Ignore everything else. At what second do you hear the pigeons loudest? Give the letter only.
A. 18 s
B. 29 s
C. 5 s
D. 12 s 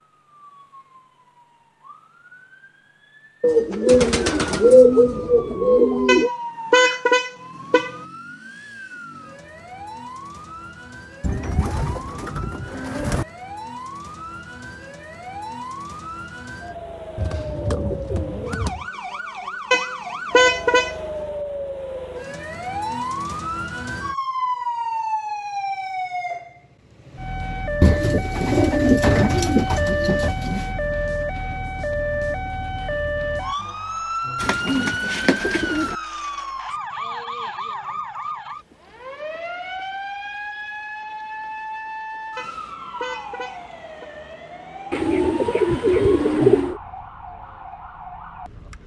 C.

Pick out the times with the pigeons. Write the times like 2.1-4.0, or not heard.
3.4-6.3, 11.2-13.2, 17.1-18.9, 27.8-30.8, 34.4-36.0, 44.9-46.8.